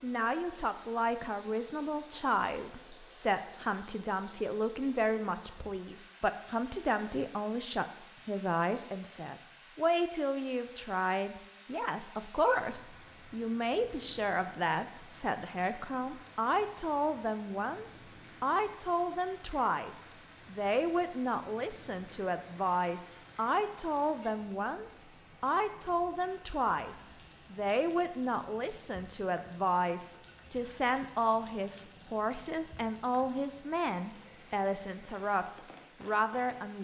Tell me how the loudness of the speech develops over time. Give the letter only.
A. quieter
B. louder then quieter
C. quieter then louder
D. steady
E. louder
D.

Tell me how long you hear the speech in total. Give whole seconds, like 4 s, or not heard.
37 s.